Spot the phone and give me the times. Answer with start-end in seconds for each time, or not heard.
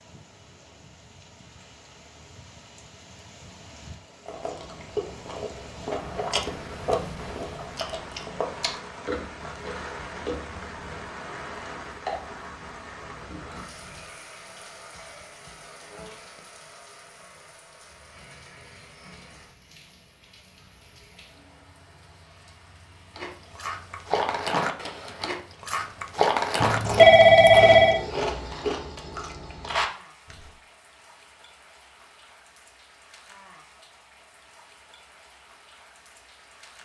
26.6-28.0.